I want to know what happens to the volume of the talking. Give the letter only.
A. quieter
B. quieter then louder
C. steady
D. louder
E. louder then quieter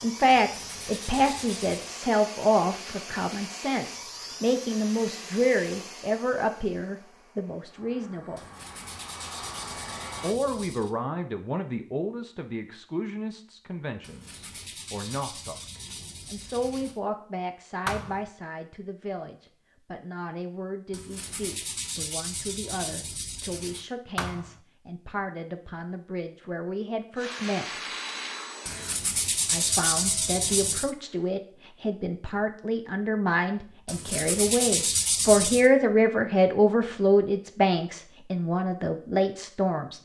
B.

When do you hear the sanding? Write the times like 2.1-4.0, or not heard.
0.3-1.9, 8.3-10.9, 14.0-17.0, 20.9-23.9, 28.6-30.9, 33.9-35.7.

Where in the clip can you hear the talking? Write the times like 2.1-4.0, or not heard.
0.0-8.4, 10.2-15.6, 16.2-27.8, 29.5-40.0.